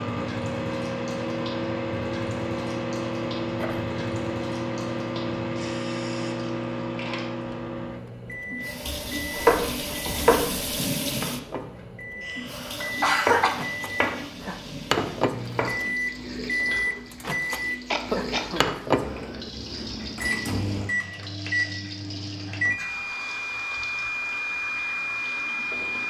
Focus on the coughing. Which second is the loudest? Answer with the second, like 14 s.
13 s.